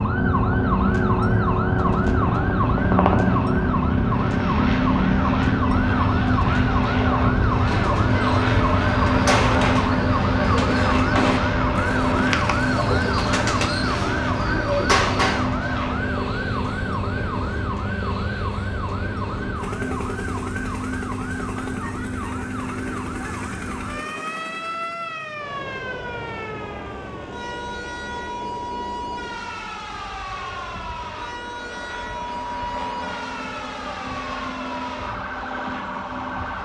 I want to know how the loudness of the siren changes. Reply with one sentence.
The loudness of the siren goes down.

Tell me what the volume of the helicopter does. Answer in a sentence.
The volume of the helicopter goes down.